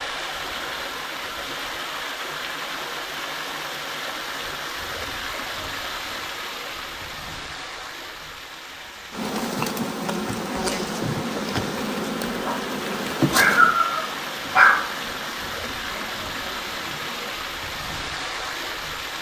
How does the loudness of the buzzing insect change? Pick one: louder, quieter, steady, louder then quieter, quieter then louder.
quieter.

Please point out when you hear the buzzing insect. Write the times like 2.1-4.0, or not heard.
9.1-17.4.